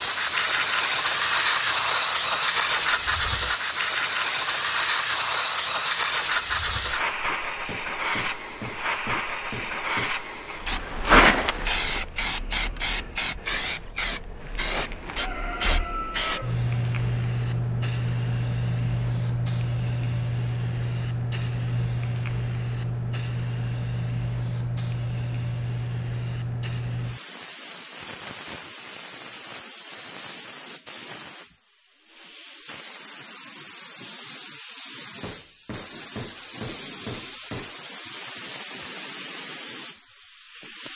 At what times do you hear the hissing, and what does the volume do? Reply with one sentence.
The hissing can be heard from 0.0 to 40.9 s, getting quieter.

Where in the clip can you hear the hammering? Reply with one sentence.
The hammering can be heard from 7.7 to 10.2 s and from 35.2 to 37.8 s.